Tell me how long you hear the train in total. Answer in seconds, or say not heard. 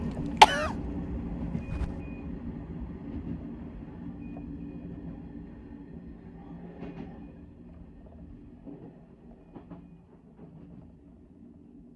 12 s.